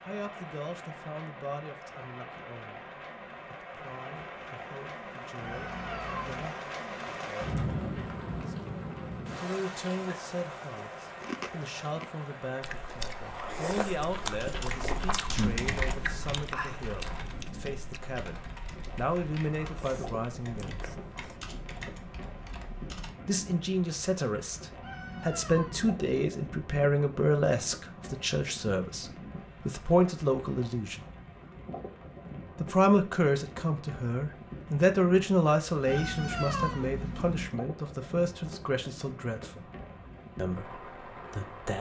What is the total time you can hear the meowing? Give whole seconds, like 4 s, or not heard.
4 s.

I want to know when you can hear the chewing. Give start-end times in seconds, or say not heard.
11.0-21.5.